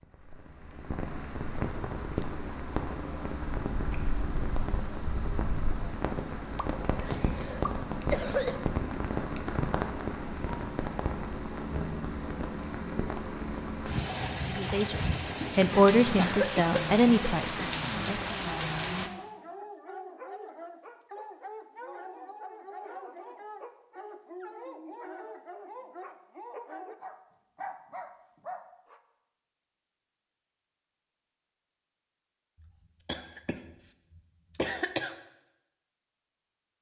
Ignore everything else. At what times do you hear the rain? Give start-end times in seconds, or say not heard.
0.0-19.1.